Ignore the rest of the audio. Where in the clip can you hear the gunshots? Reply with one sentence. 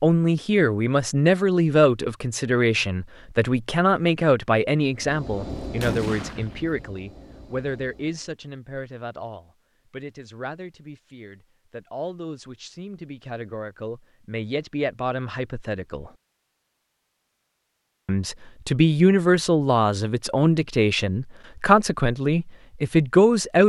The gunshots can be heard from 5.5 to 6.9 s.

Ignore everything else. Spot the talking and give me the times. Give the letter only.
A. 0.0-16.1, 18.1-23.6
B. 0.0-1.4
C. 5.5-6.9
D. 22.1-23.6
A.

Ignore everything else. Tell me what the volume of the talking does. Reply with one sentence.
The loudness of the talking goes down, then up.